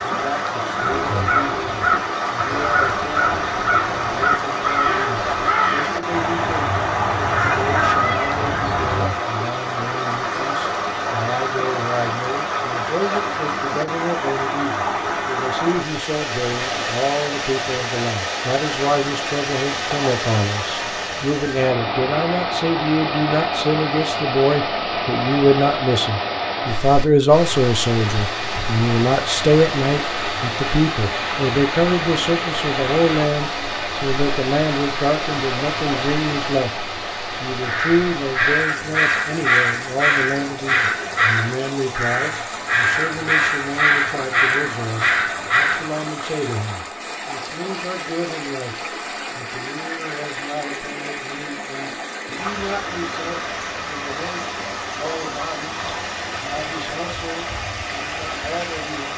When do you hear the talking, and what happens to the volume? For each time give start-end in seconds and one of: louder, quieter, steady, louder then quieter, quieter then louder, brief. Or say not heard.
0.0-36.7 louder
37.4-59.1 quieter.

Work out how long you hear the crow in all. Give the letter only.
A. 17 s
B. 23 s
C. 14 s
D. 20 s
A.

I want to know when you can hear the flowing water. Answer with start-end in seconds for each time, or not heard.
0.0-59.1.